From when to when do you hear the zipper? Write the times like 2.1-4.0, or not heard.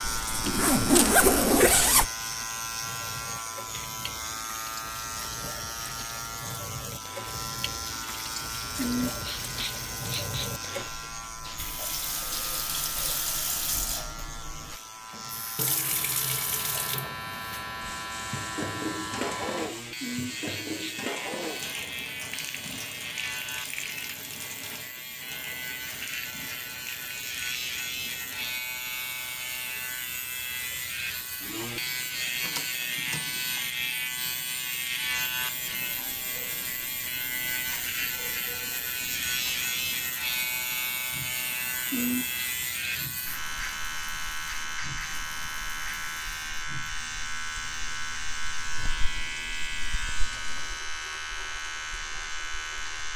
0.0-2.1.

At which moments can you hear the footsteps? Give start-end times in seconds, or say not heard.
not heard.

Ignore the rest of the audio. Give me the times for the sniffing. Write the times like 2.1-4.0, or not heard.
8.8-10.5, 20.0-20.9, 41.9-42.5.